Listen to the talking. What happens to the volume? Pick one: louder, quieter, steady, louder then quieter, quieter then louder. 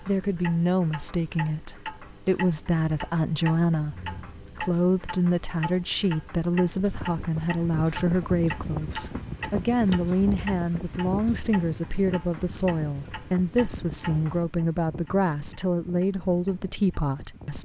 steady.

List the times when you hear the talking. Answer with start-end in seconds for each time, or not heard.
0.0-17.6.